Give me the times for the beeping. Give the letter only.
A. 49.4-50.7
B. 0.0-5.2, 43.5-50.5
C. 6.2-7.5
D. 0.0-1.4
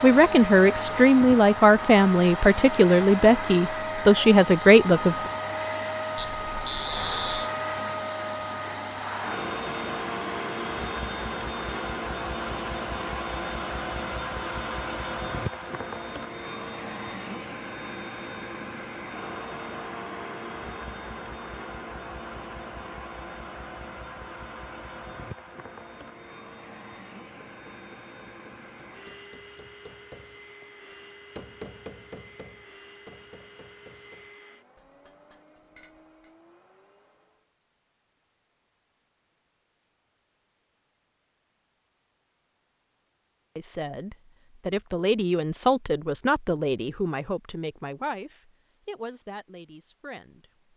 C.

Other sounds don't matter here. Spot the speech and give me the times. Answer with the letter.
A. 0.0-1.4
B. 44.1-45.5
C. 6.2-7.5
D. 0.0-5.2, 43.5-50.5
D.